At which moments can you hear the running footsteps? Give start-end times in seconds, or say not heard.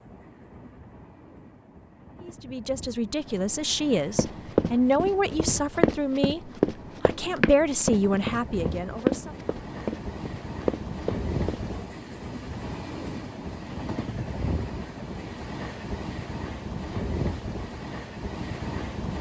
4.2-11.6.